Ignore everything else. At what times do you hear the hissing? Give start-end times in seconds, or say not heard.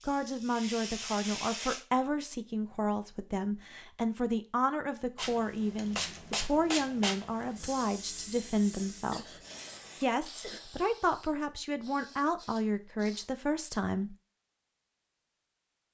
0.0-1.9, 5.2-13.3.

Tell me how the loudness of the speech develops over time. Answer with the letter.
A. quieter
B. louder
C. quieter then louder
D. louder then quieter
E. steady
E.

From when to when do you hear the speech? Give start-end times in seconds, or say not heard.
0.1-9.3, 10.0-14.2.